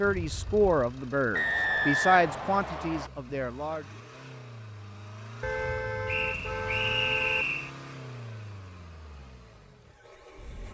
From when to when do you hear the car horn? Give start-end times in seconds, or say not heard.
0.0-0.7, 5.4-7.5.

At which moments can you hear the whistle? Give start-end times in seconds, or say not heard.
1.3-3.1, 6.0-7.7.